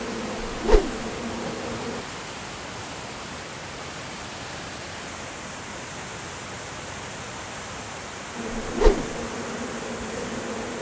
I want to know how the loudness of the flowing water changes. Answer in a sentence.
The loudness of the flowing water stays about the same.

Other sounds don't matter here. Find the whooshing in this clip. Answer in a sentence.
The whooshing can be heard from 0.5 to 1.1 s and from 8.6 to 9.2 s.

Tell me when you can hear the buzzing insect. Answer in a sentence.
You can hear the buzzing insect from 0.0 to 2.0 s and from 8.3 to 10.7 s.